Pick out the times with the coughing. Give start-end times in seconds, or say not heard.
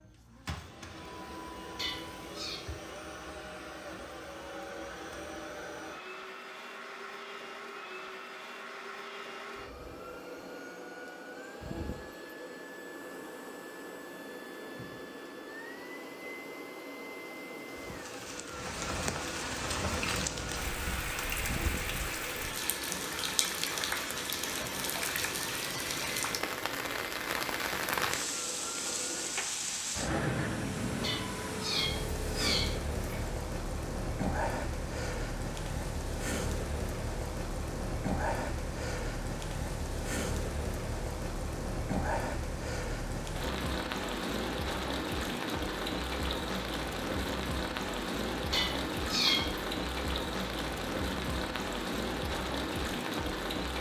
not heard.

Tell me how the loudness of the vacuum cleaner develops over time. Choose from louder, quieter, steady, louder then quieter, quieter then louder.
steady.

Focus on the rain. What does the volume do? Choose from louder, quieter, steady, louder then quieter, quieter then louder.
steady.